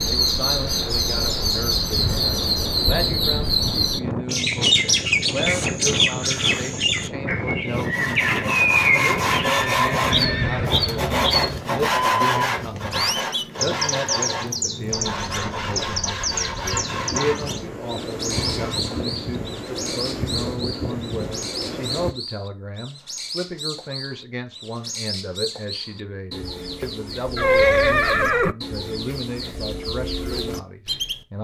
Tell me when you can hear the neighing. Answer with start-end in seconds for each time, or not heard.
9.4-10.8, 27.4-28.6.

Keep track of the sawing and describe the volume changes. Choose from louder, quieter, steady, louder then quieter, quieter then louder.
quieter.